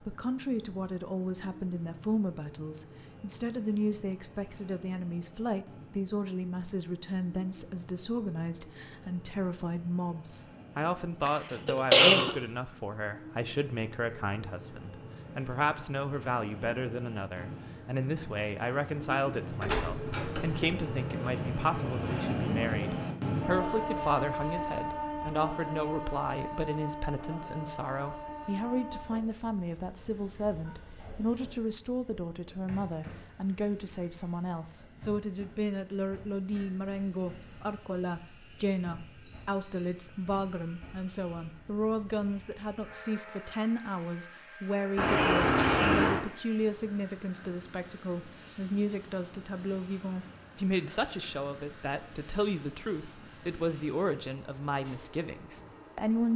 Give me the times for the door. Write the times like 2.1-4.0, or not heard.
19.6-21.1, 45.0-46.2.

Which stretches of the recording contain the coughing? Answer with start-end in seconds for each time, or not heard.
11.2-12.3.